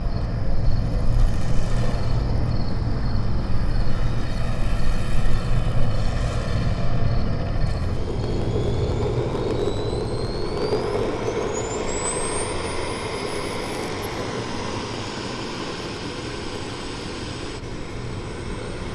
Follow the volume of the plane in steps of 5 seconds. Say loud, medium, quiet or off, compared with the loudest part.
medium, loud, loud, medium.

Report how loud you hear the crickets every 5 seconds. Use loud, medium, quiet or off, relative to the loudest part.
loud, loud, medium, medium.